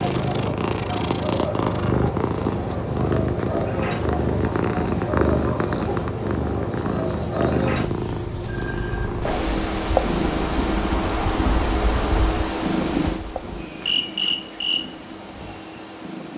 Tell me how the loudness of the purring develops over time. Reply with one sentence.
The volume of the purring goes down.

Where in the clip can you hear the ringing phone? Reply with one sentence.
The ringing phone can be heard from 8.4 to 9.2 s.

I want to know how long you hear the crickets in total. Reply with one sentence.
The crickets can be heard for 16 seconds in total.